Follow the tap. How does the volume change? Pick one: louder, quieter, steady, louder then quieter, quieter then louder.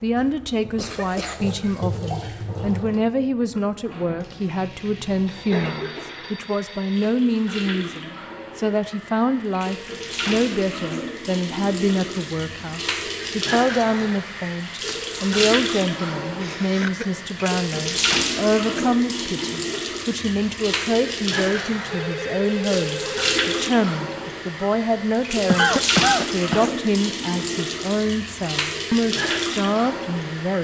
louder.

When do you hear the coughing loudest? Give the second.
26 s.